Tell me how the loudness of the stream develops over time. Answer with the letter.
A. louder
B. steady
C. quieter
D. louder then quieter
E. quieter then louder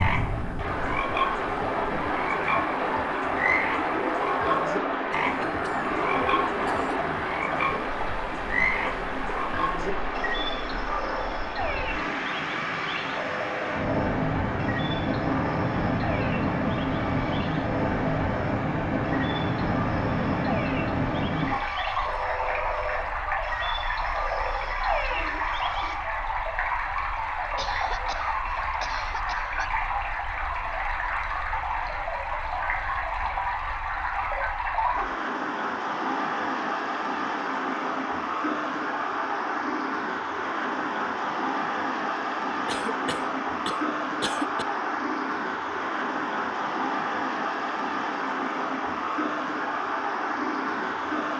B.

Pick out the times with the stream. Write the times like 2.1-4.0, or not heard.
0.0-51.3.